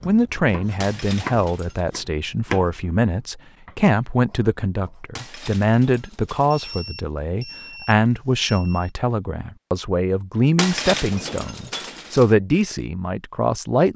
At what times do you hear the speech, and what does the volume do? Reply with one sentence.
You can hear the speech from 0.0 to 13.9 s, at a steady volume.